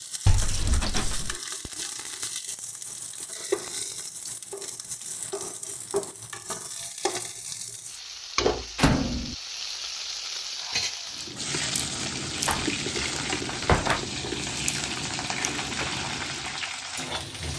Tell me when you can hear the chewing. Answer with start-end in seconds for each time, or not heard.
11.1-16.6.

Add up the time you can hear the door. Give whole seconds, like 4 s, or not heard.
3 s.